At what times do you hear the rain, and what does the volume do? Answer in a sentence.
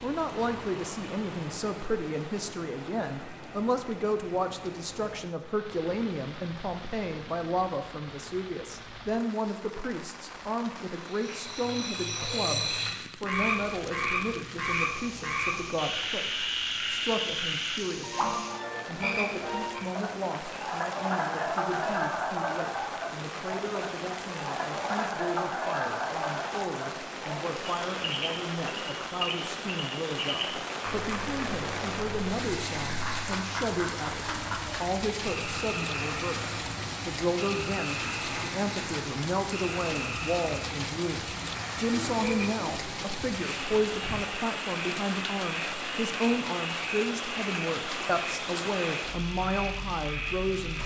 You can hear the rain from 0.0 to 50.8 s, getting louder.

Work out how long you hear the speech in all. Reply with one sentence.
The speech can be heard for 51 seconds in total.